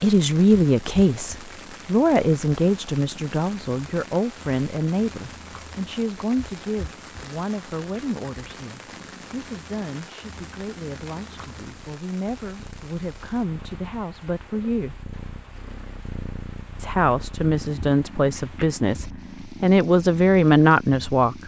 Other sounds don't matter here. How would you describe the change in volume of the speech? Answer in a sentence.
The loudness of the speech goes down, then up.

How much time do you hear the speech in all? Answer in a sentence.
You can hear the speech for 20 seconds altogether.